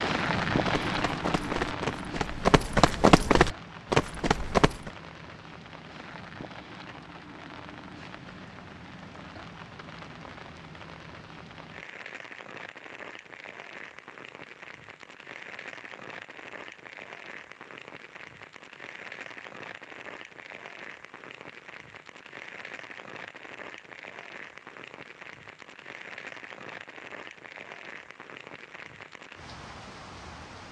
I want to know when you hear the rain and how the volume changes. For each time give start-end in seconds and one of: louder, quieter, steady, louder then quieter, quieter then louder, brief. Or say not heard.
0.0-30.6 quieter.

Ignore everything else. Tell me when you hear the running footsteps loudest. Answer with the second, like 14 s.
3 s.